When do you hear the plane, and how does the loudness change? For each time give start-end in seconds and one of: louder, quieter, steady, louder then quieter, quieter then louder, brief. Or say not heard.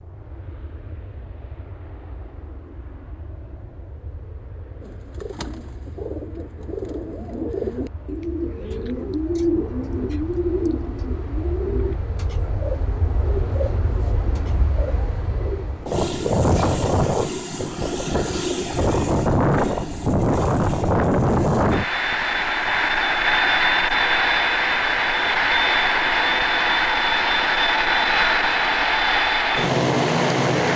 0.0-30.7 louder.